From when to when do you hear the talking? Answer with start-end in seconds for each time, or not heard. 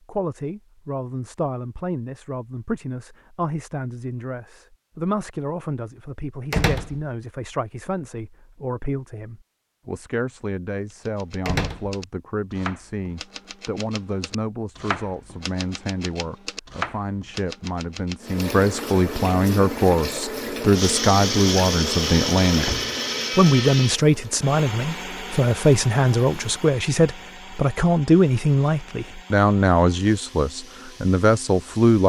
0.1-22.7, 23.4-32.0.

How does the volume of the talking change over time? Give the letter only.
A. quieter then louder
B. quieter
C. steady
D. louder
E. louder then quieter
D.